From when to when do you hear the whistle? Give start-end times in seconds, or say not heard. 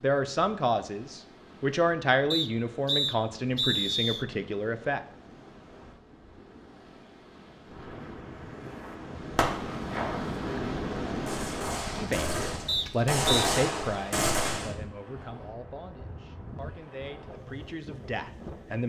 2.3-4.2, 12.7-13.5.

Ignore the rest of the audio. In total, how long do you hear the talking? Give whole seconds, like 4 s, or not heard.
12 s.